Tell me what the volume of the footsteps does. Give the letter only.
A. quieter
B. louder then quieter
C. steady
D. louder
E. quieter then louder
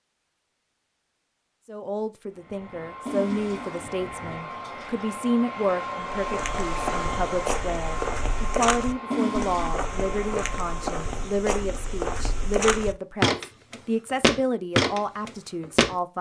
D.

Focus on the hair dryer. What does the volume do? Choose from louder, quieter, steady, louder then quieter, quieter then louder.
louder then quieter.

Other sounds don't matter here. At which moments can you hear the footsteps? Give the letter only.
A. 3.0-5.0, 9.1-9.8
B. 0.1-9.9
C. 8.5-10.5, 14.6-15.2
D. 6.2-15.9
D.